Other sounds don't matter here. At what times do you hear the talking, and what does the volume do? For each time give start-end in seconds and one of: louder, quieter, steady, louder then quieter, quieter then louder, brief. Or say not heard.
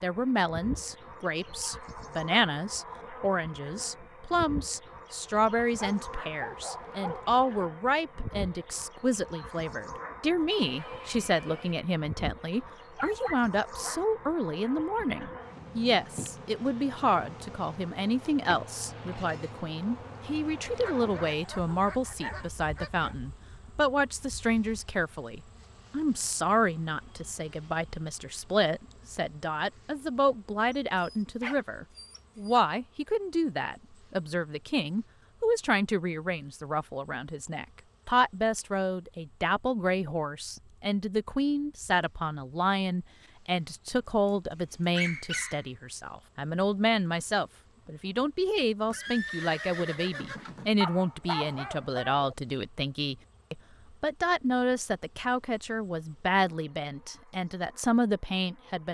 0.0-58.9 steady.